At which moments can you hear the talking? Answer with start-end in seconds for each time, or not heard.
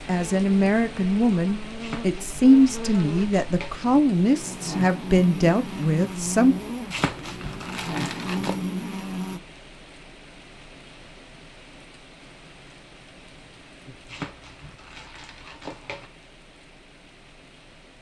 0.1-6.5.